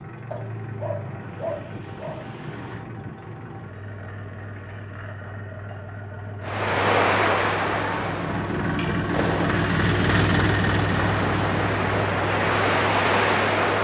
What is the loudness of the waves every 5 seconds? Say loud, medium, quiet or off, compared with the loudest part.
off, loud, loud.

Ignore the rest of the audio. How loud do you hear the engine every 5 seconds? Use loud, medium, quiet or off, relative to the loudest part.
medium, loud, loud.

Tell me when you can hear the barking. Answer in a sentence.
You can hear the barking from 0.3 to 2.9 s.